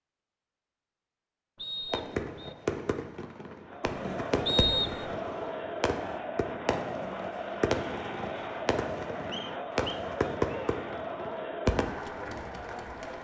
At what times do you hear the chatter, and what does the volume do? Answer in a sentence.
The chatter can be heard from 3.6 to 13.1 s, at a steady volume.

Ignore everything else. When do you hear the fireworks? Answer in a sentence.
The fireworks can be heard from 1.9 to 11.9 s.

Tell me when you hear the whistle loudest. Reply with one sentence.
The loudest moment of the whistle is at 5 seconds.